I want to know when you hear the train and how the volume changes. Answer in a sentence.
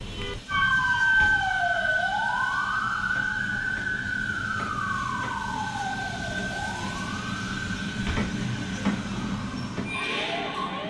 The train can be heard from 0.0 to 10.8 s, getting louder.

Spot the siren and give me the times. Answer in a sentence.
You can hear the siren from 0.0 to 10.8 s.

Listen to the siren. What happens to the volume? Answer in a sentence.
The volume of the siren goes down.